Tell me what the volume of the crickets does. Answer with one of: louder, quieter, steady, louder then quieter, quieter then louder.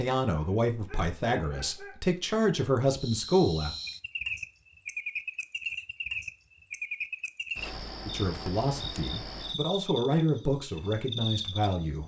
steady.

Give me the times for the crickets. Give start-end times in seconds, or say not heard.
3.0-12.0.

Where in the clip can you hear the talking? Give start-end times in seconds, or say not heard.
0.0-3.8, 8.0-12.0.